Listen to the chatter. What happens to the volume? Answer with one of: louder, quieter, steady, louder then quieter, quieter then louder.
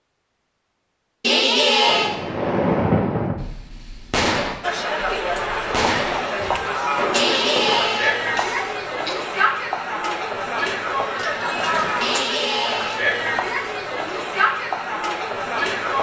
steady.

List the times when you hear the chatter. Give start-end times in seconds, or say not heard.
4.6-15.9.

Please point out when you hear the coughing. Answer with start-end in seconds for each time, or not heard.
1.2-2.1, 7.1-9.2, 12.0-13.0.